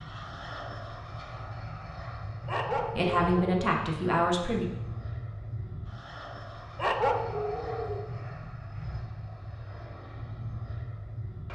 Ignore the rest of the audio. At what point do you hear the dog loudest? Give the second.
7 s.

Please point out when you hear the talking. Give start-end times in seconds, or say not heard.
3.0-4.7.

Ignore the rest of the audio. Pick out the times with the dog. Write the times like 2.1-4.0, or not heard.
2.5-3.5, 6.8-8.1.